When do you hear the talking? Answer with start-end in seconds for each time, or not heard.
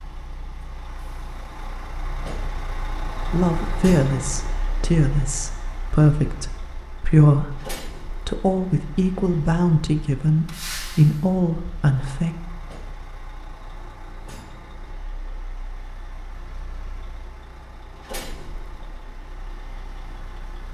3.1-12.3.